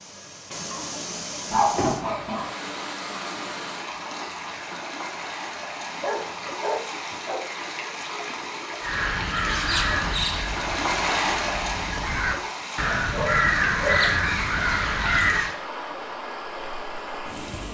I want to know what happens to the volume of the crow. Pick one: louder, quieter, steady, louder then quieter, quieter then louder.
quieter then louder.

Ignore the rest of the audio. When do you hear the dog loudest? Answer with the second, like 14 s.
2 s.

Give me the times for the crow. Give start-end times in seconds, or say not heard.
8.8-15.6.